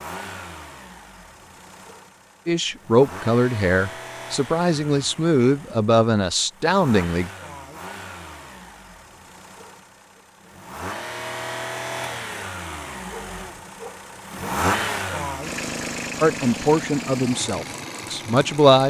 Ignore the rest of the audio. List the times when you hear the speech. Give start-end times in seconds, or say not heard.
2.5-7.3, 16.2-18.8.